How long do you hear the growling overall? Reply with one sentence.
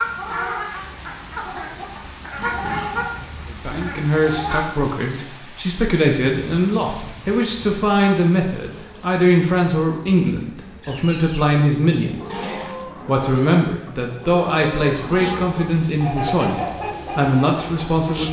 The growling can be heard for 2 seconds in total.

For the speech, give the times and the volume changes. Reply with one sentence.
You can hear the speech from 3.5 to 18.2 s, at a steady volume.